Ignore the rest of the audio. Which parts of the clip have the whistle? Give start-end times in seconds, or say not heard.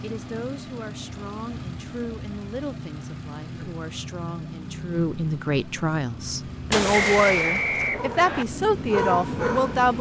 6.9-8.4.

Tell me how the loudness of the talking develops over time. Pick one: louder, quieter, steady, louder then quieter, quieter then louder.
louder.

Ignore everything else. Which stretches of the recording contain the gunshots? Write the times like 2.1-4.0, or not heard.
6.7-8.0.